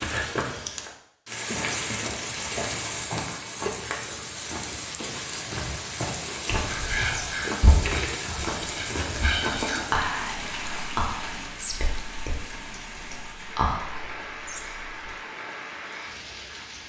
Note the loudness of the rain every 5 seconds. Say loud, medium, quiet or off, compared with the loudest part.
loud, loud, medium, medium.